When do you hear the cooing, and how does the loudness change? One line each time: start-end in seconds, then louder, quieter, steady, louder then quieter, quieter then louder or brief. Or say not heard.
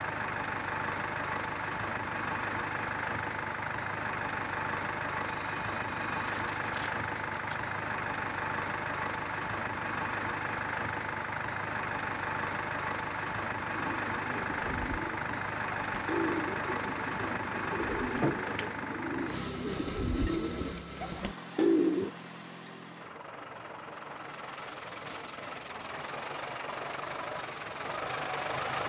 13.7-22.1 louder.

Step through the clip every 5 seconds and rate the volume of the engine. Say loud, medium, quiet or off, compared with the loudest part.
loud, loud, loud, loud, medium, loud.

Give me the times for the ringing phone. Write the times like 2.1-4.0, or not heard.
5.2-6.3.